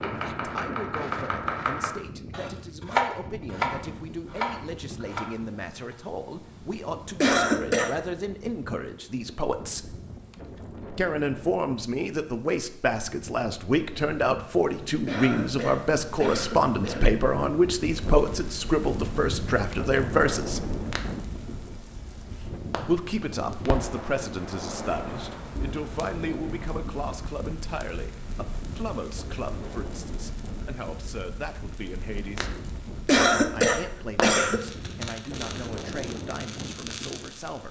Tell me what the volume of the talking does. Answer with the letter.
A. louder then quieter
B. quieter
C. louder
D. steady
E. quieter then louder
A.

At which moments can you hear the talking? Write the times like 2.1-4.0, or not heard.
0.0-9.9, 10.9-20.8, 22.8-32.5, 33.4-37.6.